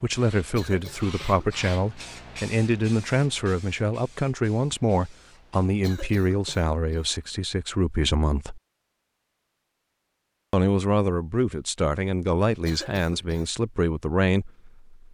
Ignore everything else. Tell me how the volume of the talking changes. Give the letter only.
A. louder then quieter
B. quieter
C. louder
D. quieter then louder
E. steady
E.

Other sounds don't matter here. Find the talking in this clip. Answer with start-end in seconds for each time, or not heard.
0.0-8.6, 10.5-14.9.